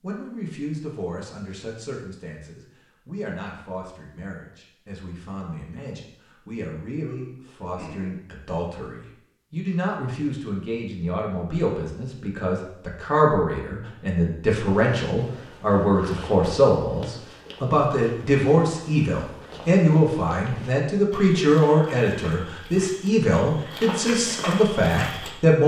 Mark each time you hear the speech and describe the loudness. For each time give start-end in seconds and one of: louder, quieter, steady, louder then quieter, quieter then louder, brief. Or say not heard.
0.0-25.6 louder.